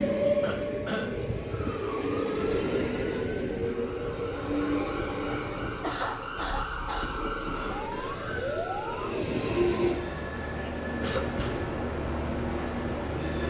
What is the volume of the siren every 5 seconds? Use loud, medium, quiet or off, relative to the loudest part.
medium, loud, off.